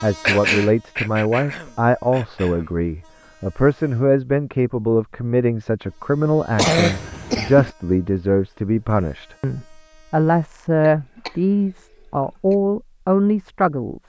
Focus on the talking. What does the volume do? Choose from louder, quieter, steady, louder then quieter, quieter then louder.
steady.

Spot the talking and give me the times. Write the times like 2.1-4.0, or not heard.
0.0-14.0.